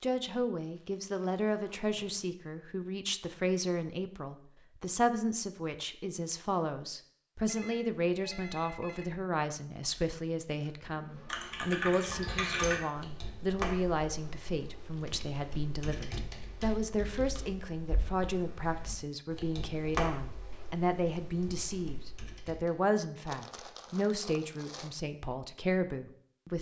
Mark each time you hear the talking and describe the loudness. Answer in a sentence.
You can hear the talking from 0.0 to 26.5 s, at a steady volume.